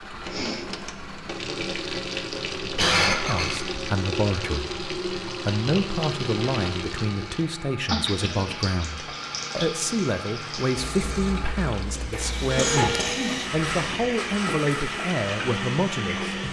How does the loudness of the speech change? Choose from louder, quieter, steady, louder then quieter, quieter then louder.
steady.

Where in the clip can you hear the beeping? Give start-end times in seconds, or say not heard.
12.4-13.2.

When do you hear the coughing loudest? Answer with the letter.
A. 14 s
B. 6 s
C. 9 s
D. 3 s
D.